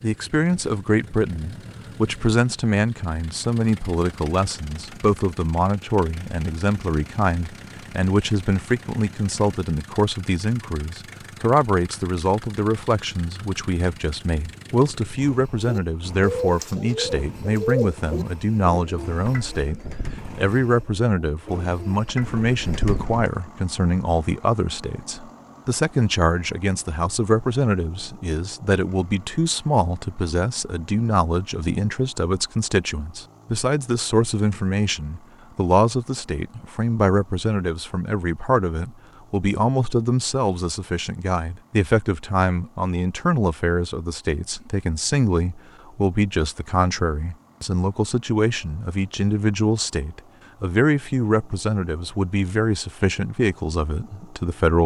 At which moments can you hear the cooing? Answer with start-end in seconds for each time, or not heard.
15.7-23.3.